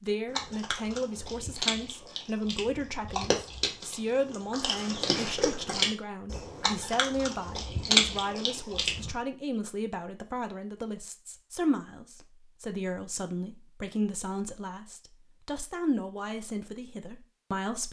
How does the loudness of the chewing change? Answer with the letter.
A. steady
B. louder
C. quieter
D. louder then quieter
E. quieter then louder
B.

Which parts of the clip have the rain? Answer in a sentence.
The rain can't be heard in this clip.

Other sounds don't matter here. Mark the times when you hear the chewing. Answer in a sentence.
You can hear the chewing from 0.3 to 9.2 s.